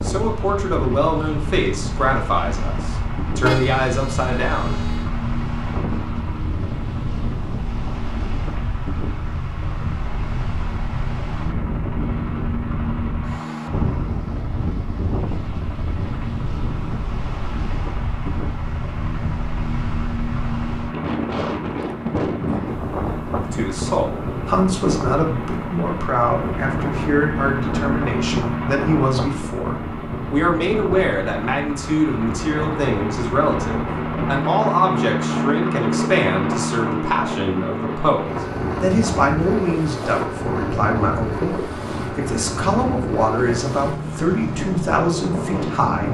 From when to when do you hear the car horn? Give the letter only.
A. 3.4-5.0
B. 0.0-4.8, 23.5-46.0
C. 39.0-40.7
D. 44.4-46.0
A.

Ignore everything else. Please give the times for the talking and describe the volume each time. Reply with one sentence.
You can hear the talking from 0.0 to 4.8 s, at a steady volume; and from 23.5 to 46.0 s, at a steady volume.